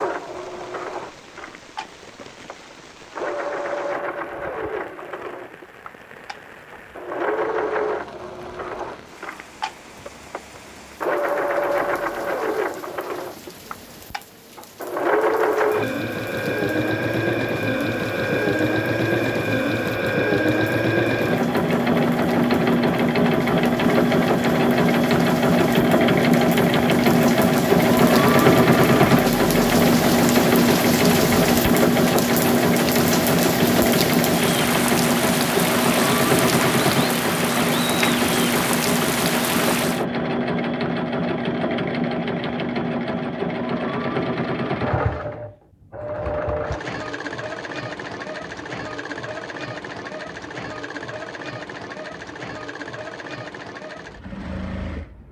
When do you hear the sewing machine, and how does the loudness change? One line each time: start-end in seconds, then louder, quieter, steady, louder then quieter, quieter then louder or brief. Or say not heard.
0.0-55.2 louder then quieter.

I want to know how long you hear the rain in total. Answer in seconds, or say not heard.
40 s.